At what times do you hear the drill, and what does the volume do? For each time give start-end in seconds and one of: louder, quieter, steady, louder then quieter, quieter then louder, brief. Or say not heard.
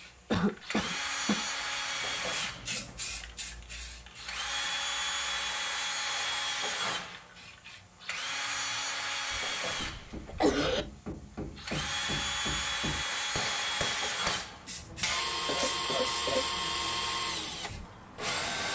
0.0-18.7 steady.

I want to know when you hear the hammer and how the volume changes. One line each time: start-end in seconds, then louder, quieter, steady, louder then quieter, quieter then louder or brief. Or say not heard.
9.7-15.2 louder.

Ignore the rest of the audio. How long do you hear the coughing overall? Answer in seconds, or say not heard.
4 s.